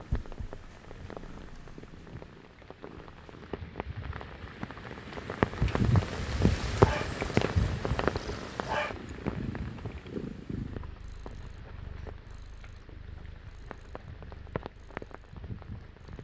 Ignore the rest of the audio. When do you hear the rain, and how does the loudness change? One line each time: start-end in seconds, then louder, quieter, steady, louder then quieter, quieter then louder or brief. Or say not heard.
0.0-16.1 louder then quieter.